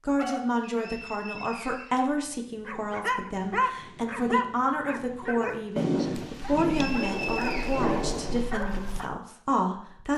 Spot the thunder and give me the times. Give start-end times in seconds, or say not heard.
5.8-8.4.